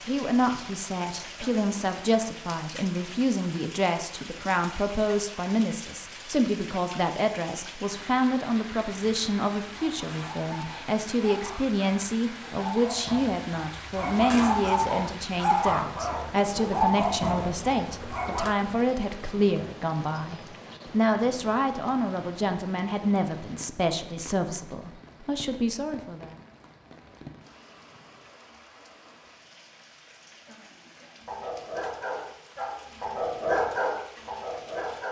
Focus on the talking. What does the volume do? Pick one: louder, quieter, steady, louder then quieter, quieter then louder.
steady.